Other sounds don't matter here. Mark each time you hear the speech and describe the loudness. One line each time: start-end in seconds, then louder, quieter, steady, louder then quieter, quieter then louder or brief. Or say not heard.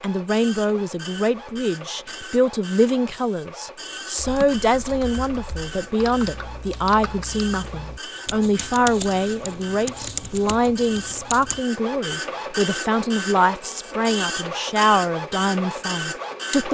0.0-16.7 steady.